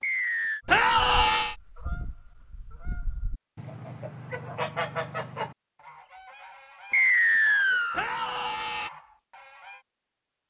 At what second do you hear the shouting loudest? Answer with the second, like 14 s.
1 s.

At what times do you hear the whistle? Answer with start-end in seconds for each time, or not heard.
0.0-0.6, 6.9-8.1.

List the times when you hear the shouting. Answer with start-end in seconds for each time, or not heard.
0.7-1.6, 7.9-8.9.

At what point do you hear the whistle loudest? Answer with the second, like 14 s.
7 s.